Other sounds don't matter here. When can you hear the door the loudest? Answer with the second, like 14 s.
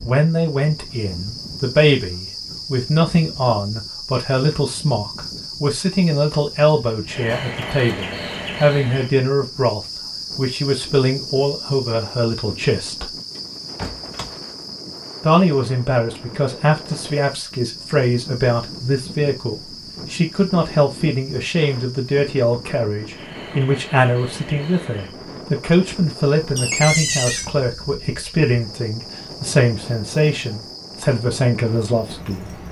27 s.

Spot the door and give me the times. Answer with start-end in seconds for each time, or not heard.
7.2-7.8, 13.3-14.5, 26.6-27.5.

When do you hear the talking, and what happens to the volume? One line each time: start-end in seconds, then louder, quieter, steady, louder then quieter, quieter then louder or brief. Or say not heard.
0.0-13.2 steady
15.2-32.6 steady.